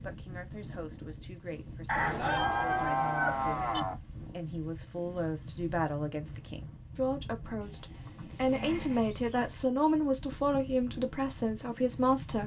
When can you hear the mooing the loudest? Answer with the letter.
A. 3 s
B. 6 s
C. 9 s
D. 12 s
A.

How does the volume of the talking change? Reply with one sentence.
The loudness of the talking goes up.